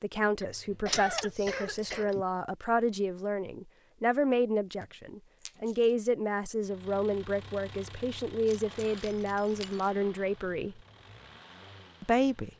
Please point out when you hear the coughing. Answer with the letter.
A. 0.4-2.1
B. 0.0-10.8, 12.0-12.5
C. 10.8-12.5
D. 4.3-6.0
A.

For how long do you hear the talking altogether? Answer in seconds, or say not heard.
11 s.